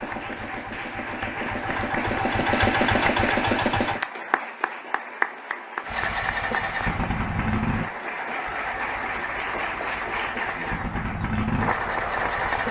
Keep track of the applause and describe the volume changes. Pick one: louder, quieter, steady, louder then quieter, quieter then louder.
steady.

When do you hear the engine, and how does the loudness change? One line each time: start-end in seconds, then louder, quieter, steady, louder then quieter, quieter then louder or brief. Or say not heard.
0.0-4.0 louder
5.8-12.6 quieter then louder.